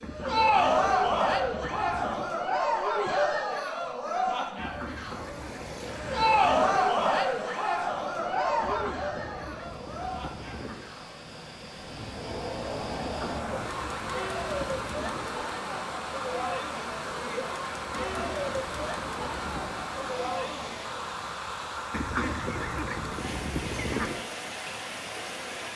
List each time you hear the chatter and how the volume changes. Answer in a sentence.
You can hear the chatter from 0.0 to 21.0 s, getting quieter.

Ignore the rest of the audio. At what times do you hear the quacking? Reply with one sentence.
You can hear the quacking from 0.0 to 2.3 s, from 4.5 to 6.9 s, from 8.6 to 10.9 s, from 12.9 to 15.3 s, from 17.9 to 19.9 s and from 21.9 to 24.2 s.